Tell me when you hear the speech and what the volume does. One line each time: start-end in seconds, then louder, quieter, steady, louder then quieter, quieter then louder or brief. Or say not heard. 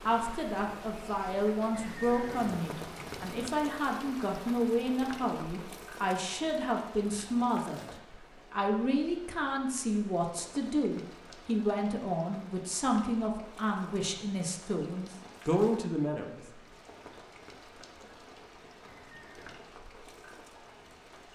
0.0-16.4 steady.